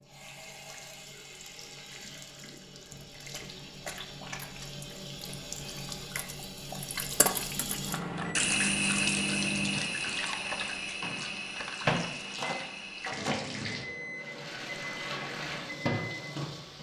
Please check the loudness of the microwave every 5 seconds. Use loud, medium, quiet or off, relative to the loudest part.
off, loud, loud, medium.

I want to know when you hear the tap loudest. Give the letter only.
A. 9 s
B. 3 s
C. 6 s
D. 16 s
A.